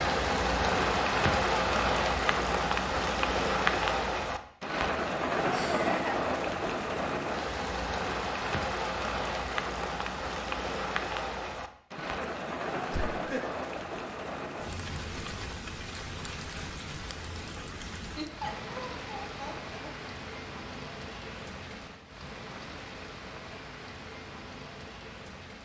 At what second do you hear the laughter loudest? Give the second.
6 s.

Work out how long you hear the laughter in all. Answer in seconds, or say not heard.
4 s.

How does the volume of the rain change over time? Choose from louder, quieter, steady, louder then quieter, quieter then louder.
quieter.